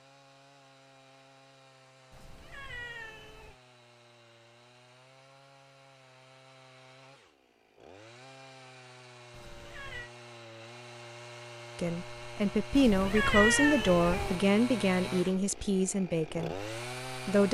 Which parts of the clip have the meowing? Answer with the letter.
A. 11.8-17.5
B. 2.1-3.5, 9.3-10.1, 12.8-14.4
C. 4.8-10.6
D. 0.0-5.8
B.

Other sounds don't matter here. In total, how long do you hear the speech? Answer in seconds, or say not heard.
6 s.